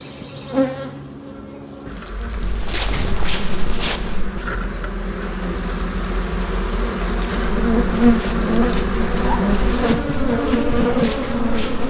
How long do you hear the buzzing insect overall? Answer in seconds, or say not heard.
12 s.